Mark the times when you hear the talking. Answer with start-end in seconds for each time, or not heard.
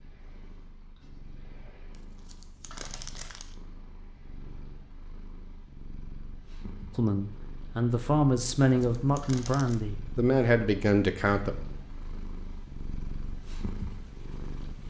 7.0-11.6.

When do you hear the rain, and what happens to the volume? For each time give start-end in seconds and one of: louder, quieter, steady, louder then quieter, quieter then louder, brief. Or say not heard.
not heard.